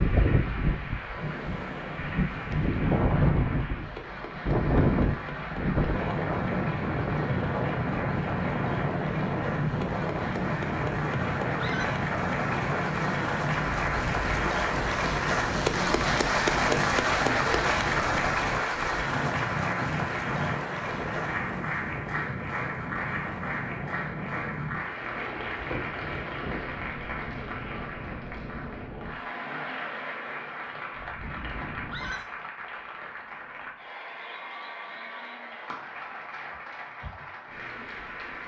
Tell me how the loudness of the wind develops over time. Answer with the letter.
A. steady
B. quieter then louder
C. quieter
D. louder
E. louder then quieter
C.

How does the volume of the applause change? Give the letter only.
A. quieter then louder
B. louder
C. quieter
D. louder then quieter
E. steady
D.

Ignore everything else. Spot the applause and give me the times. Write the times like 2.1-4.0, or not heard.
0.0-38.4.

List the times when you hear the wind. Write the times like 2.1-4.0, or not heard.
0.0-32.1.